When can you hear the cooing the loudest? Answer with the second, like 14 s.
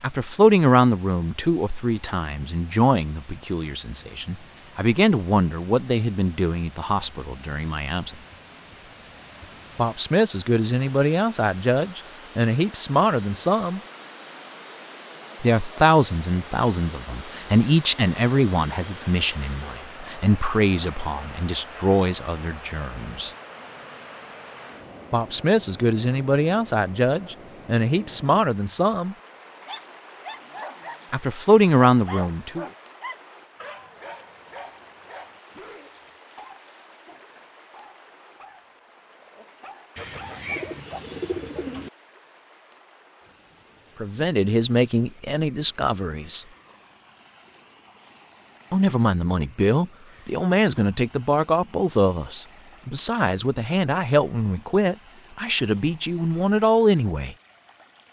41 s.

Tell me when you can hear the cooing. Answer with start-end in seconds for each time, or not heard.
40.0-41.9.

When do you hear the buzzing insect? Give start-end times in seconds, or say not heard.
not heard.